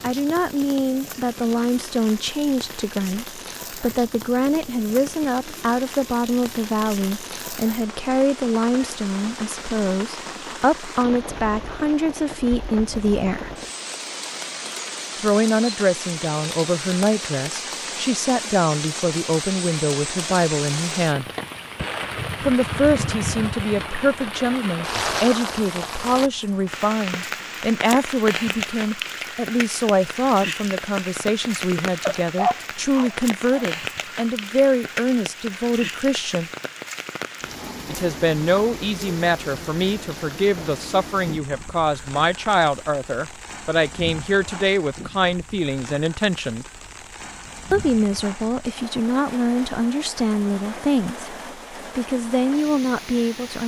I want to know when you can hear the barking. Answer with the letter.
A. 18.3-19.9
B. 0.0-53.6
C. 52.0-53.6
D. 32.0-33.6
D.